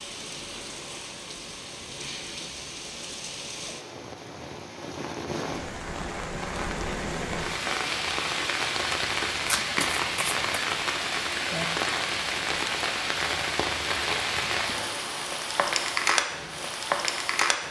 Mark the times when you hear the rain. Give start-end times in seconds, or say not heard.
0.0-17.6.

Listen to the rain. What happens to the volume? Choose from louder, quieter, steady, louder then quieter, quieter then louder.
louder.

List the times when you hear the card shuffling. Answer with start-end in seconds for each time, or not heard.
9.4-10.4.